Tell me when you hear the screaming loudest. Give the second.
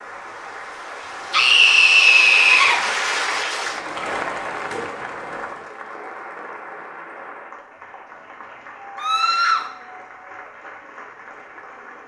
2 s.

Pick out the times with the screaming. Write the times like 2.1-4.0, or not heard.
1.3-2.8, 8.9-9.7.